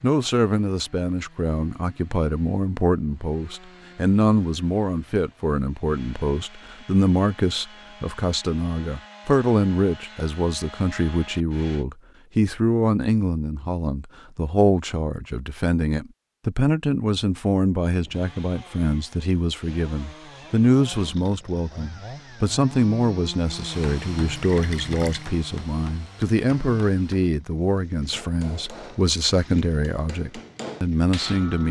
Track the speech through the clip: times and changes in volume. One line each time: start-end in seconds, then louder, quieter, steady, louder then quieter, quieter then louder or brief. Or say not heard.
0.0-31.6 steady.